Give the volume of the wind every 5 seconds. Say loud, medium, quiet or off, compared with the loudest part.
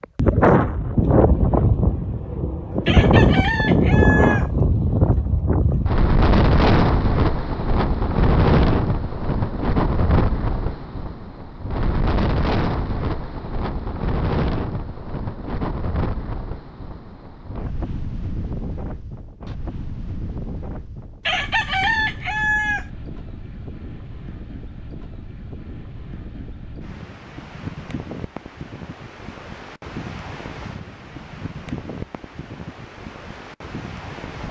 loud, loud, medium, quiet, quiet, quiet, quiet.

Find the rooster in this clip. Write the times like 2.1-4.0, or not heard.
2.9-4.5, 21.2-22.9.